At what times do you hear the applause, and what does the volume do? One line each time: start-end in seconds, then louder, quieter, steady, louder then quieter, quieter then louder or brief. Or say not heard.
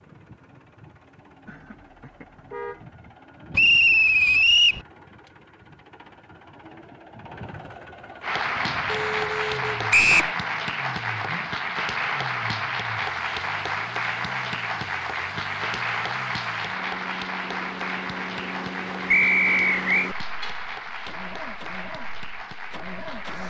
8.2-23.4 quieter.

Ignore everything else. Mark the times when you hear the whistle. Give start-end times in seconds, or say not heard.
3.5-4.8, 9.9-10.3, 19.1-20.1.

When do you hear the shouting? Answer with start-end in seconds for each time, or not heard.
not heard.